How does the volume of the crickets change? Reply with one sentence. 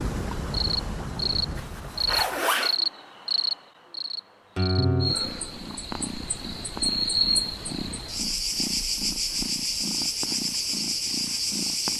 The loudness of the crickets stays about the same.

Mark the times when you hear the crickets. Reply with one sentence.
You can hear the crickets from 0.0 to 11.9 s.